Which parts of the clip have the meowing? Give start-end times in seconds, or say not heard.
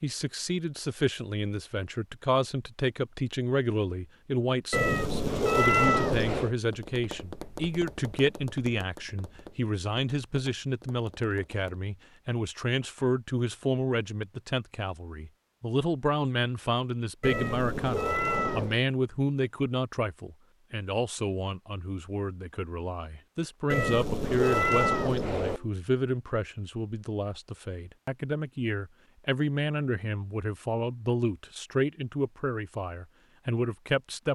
4.7-6.5, 17.2-18.8, 23.7-25.6.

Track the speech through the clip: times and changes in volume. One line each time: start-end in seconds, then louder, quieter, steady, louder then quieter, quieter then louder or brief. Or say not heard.
0.0-34.2 steady.